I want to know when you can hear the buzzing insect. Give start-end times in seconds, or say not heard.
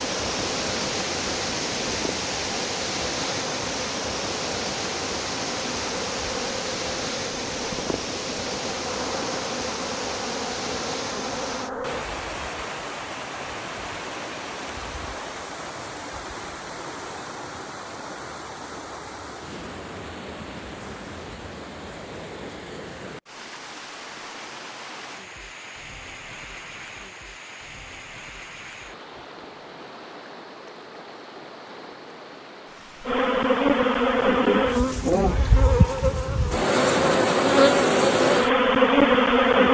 0.0-12.1, 33.0-39.6.